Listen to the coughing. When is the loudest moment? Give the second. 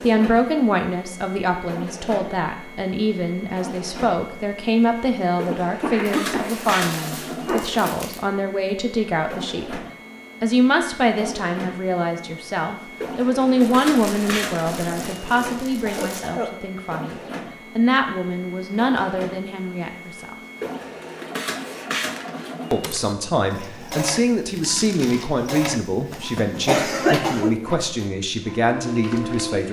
27 s.